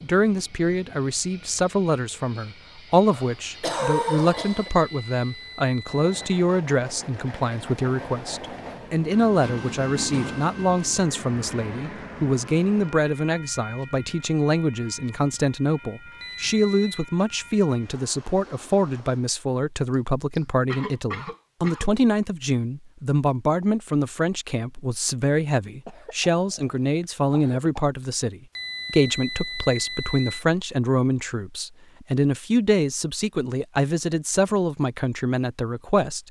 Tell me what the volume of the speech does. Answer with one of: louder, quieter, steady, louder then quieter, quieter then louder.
steady.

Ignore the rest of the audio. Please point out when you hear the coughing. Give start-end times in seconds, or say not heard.
3.1-4.7, 19.9-21.9, 25.9-27.7.